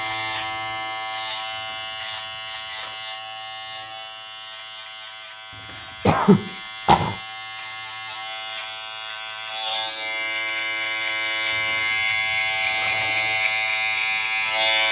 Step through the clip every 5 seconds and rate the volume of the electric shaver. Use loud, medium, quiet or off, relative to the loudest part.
medium, medium, loud.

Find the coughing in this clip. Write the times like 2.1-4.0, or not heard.
6.0-7.2.